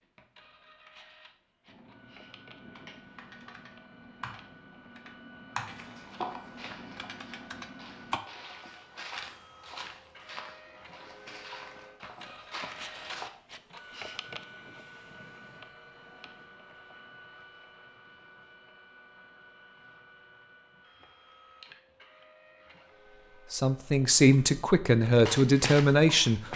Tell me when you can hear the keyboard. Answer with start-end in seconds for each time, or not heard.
1.6-8.2.